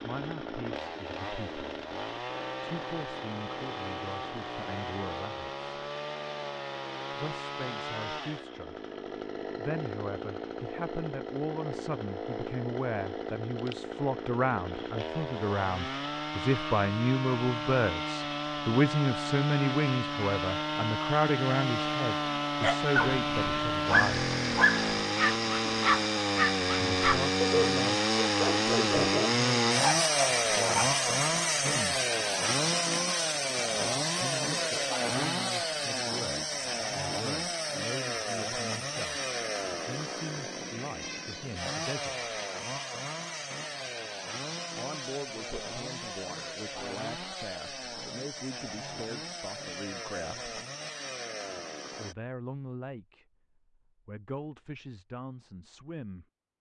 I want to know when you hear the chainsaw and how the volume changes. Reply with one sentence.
You can hear the chainsaw from 0.0 to 52.1 s, getting louder then quieter.